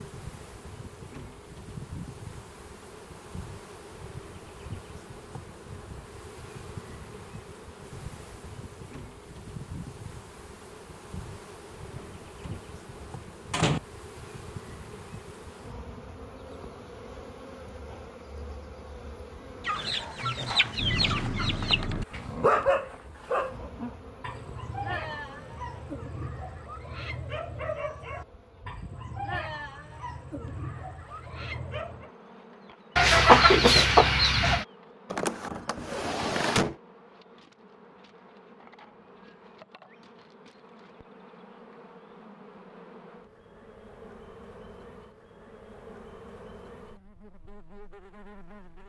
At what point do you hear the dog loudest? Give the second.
23 s.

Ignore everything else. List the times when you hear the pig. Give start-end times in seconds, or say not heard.
not heard.